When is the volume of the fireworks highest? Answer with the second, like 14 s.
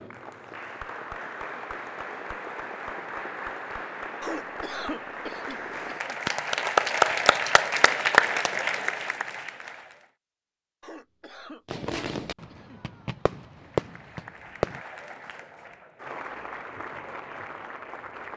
14 s.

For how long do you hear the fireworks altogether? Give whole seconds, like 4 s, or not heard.
3 s.